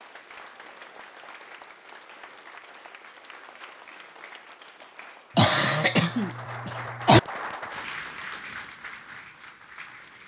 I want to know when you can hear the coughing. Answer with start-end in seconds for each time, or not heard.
5.3-7.2.